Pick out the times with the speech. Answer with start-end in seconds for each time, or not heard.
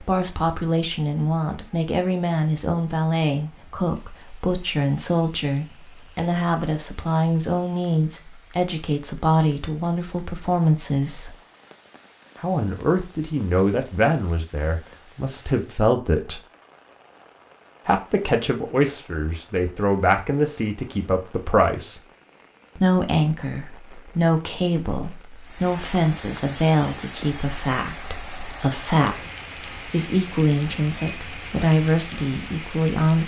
0.0-11.3, 12.4-16.4, 17.9-22.0, 22.8-33.2.